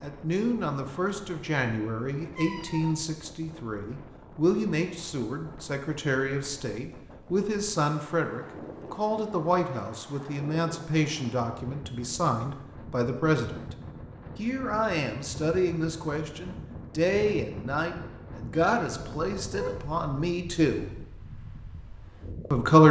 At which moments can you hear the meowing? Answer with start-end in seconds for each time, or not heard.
2.3-3.0, 18.8-19.9.